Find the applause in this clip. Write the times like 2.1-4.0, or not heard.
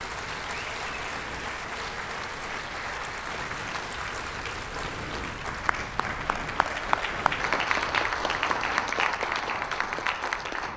0.0-10.7.